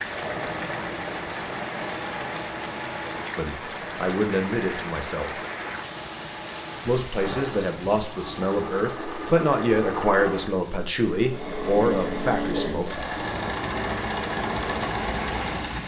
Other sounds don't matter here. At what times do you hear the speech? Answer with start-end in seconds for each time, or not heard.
3.4-5.3, 6.8-12.9.